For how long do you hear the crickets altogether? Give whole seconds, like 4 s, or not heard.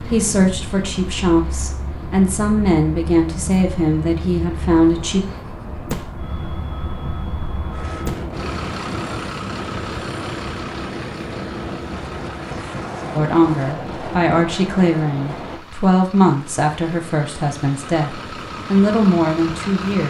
not heard.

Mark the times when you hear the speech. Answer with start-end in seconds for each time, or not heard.
0.0-5.2, 13.2-20.0.